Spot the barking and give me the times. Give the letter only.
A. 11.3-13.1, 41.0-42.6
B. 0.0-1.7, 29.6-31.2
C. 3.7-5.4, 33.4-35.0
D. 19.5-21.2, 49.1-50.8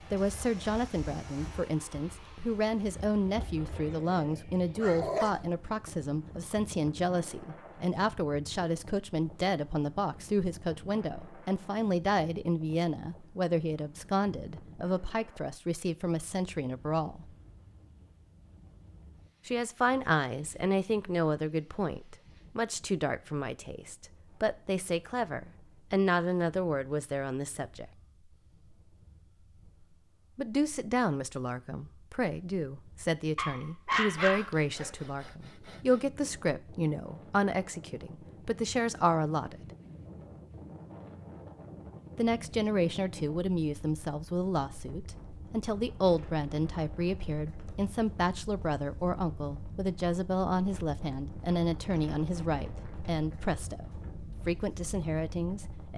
C.